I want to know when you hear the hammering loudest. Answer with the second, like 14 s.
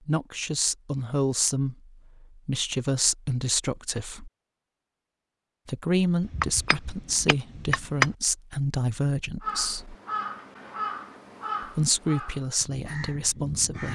8 s.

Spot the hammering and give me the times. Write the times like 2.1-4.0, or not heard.
6.2-8.1.